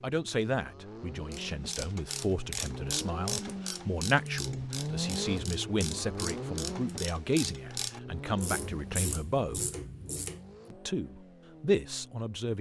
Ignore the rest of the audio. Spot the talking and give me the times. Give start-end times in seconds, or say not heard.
0.0-9.7, 10.7-12.5.